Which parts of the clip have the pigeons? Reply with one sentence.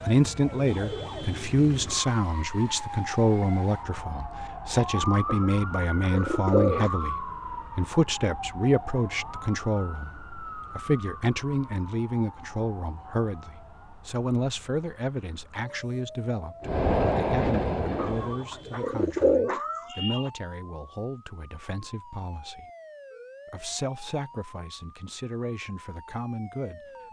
You can hear the pigeons from 5.2 to 7.1 s and from 17.9 to 20.3 s.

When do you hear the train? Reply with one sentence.
The train can be heard from 16.6 to 18.4 s.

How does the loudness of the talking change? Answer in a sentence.
The loudness of the talking goes down.